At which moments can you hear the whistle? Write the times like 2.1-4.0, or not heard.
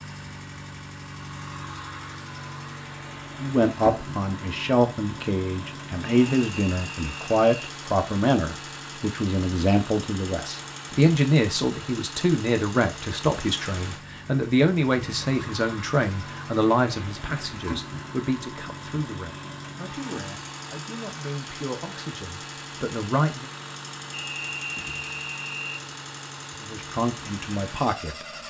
6.2-7.8, 24.1-25.9.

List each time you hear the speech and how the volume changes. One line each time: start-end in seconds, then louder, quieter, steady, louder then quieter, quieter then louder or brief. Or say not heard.
3.4-23.5 quieter
26.6-28.4 brief.